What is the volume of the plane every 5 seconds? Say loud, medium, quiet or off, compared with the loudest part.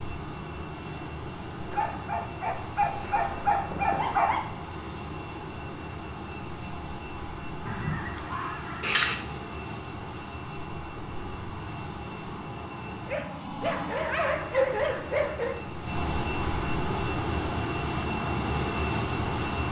medium, medium, medium, loud.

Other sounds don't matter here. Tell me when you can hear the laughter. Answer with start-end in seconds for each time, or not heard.
not heard.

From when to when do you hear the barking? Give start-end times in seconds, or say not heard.
1.7-4.5, 13.1-15.6.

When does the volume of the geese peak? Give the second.
9 s.